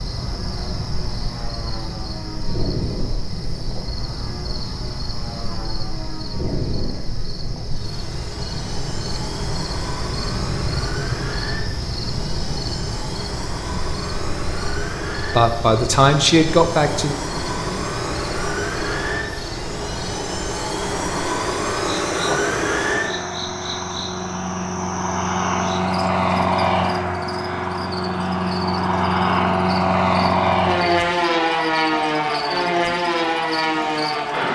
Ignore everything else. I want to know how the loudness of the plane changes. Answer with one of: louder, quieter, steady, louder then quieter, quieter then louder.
louder.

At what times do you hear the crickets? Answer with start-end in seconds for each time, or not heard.
0.0-34.5.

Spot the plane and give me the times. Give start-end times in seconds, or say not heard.
0.1-34.5.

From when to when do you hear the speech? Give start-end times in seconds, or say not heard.
15.3-17.1.